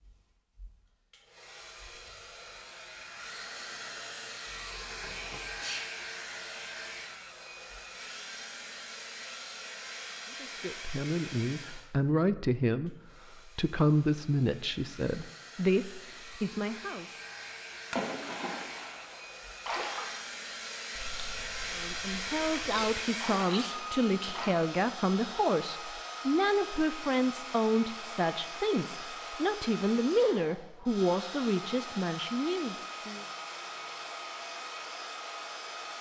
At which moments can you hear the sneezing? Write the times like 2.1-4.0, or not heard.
5.5-5.9, 22.6-24.4.